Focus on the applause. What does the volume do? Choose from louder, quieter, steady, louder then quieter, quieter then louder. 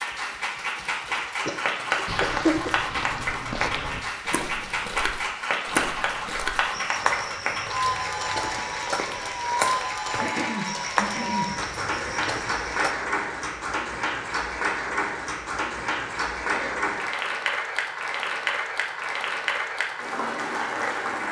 steady.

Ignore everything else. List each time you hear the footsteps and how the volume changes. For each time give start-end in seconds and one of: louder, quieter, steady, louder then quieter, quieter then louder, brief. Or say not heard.
2.0-12.9 steady.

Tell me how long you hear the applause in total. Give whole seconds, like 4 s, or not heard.
21 s.